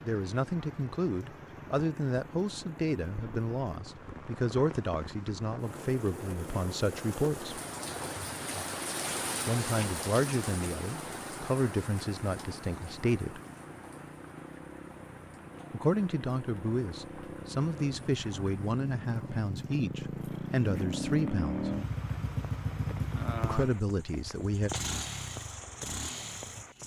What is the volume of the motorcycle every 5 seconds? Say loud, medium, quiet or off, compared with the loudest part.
quiet, quiet, quiet, medium, loud, medium.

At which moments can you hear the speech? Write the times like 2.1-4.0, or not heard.
0.0-7.6, 9.4-13.4, 15.7-21.7, 23.4-24.7.